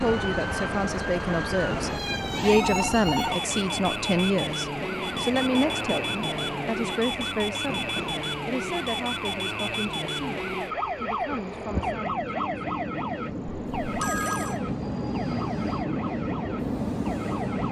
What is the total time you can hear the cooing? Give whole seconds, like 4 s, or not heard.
not heard.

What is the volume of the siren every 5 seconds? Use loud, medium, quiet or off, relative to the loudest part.
loud, loud, loud, medium.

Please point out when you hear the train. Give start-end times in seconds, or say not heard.
0.0-17.6.